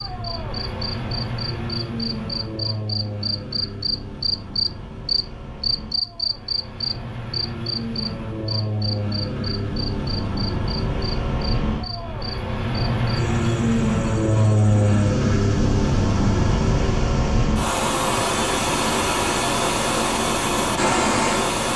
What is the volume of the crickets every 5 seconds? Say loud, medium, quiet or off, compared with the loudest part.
loud, loud, medium, quiet, off.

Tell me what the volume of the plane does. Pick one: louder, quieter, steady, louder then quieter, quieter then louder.
louder.